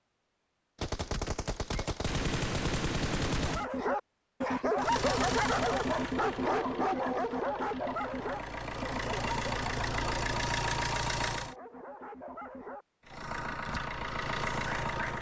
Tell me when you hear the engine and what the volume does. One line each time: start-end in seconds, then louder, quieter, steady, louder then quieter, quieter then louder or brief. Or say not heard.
4.8-11.6 quieter then louder
13.1-15.1 brief.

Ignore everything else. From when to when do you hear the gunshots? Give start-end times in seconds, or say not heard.
0.8-3.6.